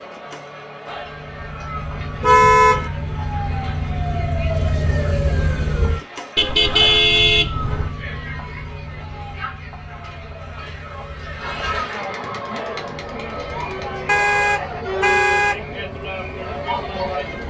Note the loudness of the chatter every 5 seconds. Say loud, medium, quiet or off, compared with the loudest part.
medium, medium, loud, loud.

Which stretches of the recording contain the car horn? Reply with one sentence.
The car horn can be heard from 2.2 to 2.9 s, from 6.3 to 7.9 s and from 14.1 to 15.6 s.